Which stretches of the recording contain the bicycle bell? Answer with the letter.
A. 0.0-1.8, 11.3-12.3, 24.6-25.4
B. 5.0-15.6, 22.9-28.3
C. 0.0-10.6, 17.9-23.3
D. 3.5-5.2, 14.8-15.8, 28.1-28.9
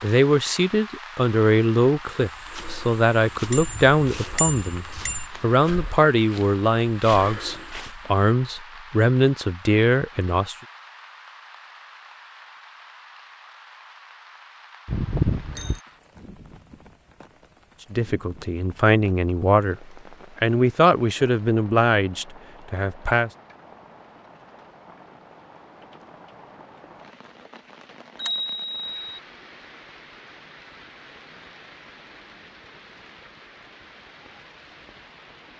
D.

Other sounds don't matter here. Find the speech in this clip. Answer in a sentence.
You can hear the speech from 0.0 to 10.6 s and from 17.9 to 23.3 s.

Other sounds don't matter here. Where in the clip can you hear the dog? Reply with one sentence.
The dog can't be heard in this clip.